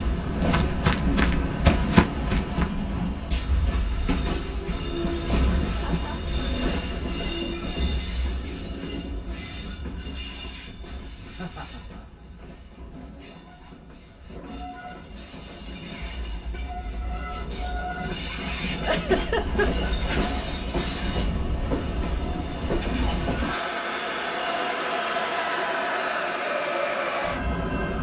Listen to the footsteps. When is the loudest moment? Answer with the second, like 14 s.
2 s.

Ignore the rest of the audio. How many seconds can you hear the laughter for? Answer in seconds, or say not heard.
2 s.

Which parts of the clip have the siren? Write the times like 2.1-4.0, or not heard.
not heard.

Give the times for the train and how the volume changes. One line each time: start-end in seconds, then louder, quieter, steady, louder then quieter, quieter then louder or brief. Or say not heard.
0.0-27.9 quieter then louder.